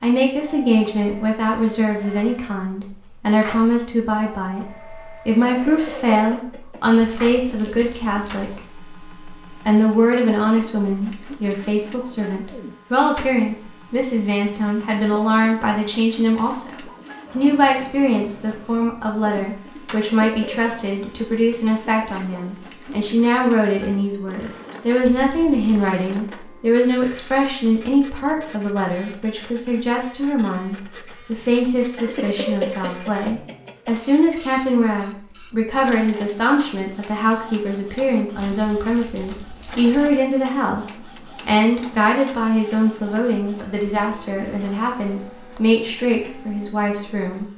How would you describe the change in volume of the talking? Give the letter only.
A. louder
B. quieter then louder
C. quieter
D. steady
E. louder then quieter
D.